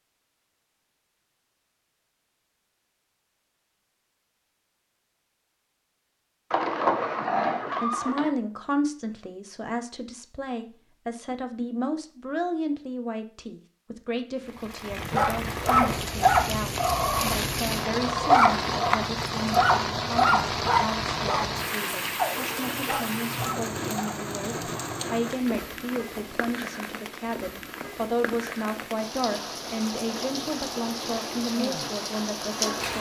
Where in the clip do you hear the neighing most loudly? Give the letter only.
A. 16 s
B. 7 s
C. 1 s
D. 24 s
B.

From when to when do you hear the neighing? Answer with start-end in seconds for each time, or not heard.
6.5-8.3.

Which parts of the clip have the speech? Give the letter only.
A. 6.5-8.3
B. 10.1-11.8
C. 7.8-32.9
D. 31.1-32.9
C.